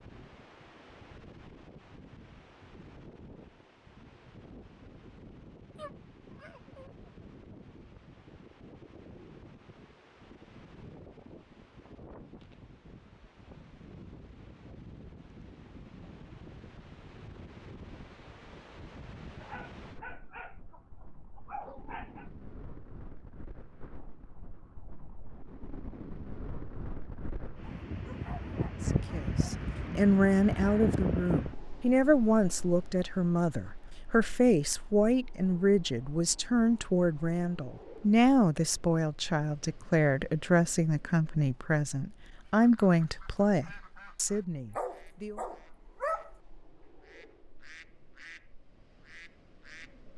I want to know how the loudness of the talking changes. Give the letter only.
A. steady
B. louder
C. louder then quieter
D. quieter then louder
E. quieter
A.